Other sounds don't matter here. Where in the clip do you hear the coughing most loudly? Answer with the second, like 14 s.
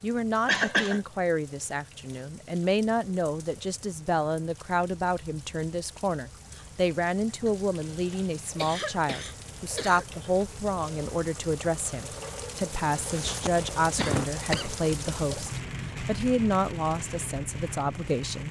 1 s.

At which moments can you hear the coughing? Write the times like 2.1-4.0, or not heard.
0.5-1.0, 7.5-10.1, 12.9-14.8.